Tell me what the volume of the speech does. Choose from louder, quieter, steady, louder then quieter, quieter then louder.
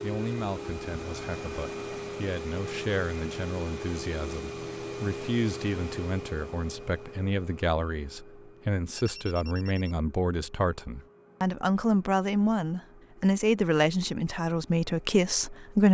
louder.